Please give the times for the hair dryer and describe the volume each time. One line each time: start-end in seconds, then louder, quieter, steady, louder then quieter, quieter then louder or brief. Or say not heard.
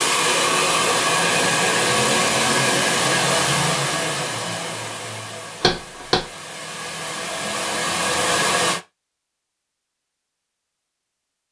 0.0-8.8 quieter then louder.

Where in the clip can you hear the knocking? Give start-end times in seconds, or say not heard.
5.6-6.2.